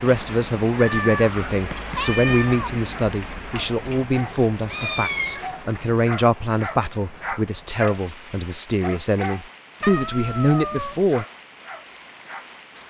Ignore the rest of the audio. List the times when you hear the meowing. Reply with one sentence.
The meowing can be heard from 0.8 to 2.7 s, from 4.7 to 5.5 s and from 9.8 to 11.0 s.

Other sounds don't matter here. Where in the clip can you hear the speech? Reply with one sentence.
The speech can be heard from 0.0 to 11.2 s.